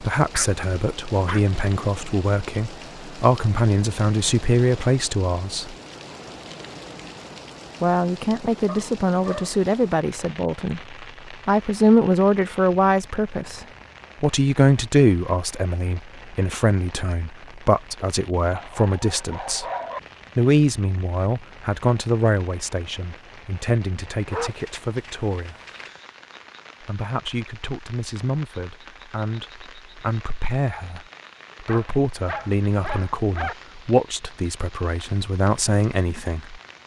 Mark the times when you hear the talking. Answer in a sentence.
You can hear the talking from 0.0 to 5.8 s, from 7.8 to 19.6 s, from 20.4 to 25.6 s and from 26.8 to 36.6 s.